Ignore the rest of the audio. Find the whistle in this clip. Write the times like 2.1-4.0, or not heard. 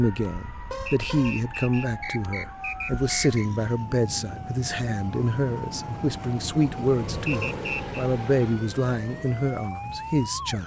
0.8-3.5, 7.2-8.0.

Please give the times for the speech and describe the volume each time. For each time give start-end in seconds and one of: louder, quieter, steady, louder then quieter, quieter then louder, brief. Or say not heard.
0.0-10.6 steady.